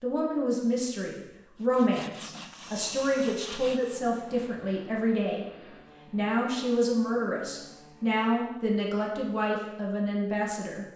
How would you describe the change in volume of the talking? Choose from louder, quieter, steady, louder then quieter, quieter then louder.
steady.